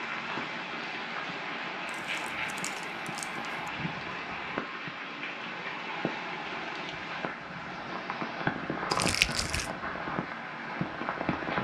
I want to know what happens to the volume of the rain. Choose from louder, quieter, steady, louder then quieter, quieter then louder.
steady.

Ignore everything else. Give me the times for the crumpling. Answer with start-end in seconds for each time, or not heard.
1.9-3.7, 8.9-9.7.